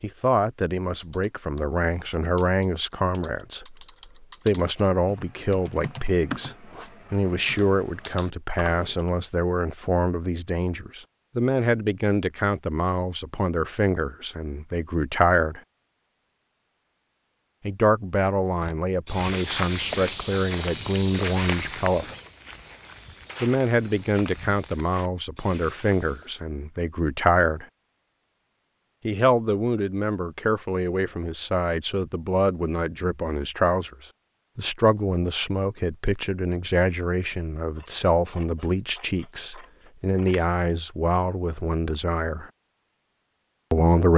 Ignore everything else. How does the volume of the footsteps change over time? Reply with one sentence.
The volume of the footsteps goes down.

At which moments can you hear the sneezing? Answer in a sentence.
You can't hear the sneezing here.